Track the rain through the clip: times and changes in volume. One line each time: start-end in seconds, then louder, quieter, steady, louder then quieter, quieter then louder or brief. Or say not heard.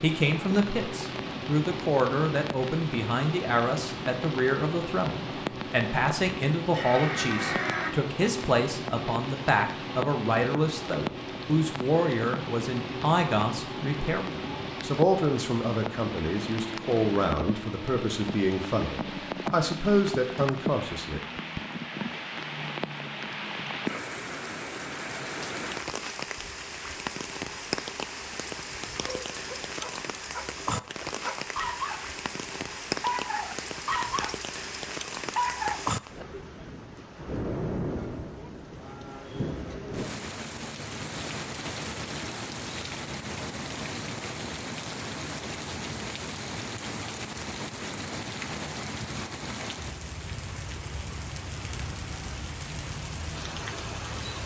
0.0-54.4 steady.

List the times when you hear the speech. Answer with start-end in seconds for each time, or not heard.
0.0-21.2.